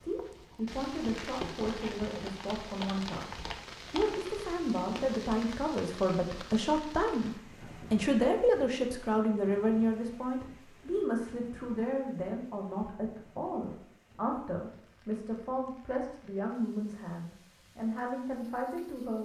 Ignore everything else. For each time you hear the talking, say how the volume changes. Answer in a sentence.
The talking can be heard from 0.0 to 19.2 s, getting louder then quieter.